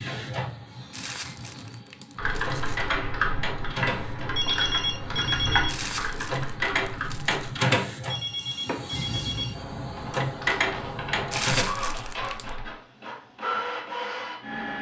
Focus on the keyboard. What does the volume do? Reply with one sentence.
The volume of the keyboard goes down.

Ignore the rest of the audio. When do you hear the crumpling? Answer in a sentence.
You can hear the crumpling from 0.9 to 2.9 s, from 5.7 to 7.5 s and from 11.3 to 12.5 s.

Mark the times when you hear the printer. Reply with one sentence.
The printer can be heard from 0.0 to 14.7 s.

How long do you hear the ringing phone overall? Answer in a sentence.
The ringing phone can be heard for 3 seconds in total.